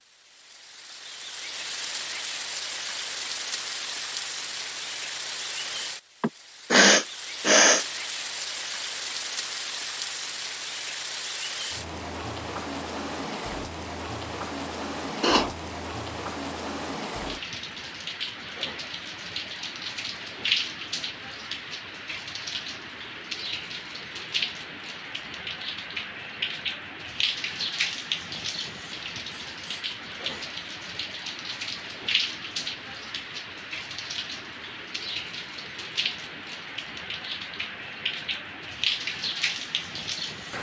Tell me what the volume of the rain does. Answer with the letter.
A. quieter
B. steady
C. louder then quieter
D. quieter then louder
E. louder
B.